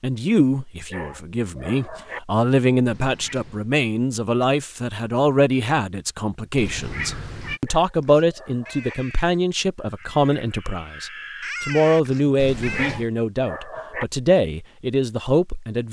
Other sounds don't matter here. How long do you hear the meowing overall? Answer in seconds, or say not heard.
3 s.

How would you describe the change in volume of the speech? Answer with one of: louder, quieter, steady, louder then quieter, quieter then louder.
steady.